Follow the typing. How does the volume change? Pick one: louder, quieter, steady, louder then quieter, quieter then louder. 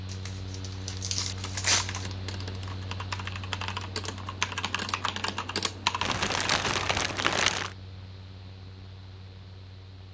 louder.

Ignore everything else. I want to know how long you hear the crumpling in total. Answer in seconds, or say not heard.
4 s.